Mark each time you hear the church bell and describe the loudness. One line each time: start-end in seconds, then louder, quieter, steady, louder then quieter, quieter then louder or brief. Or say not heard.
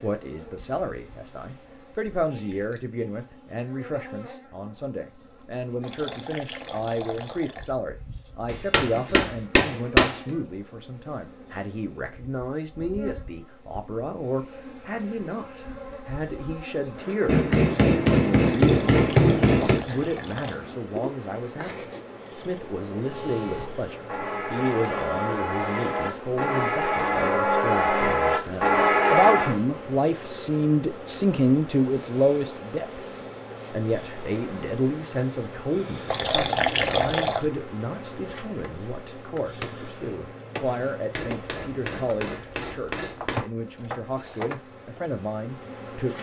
23.0-29.6 louder.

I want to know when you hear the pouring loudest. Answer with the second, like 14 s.
37 s.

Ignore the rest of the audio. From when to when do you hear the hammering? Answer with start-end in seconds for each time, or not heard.
8.4-10.3, 17.2-19.8, 41.1-43.5.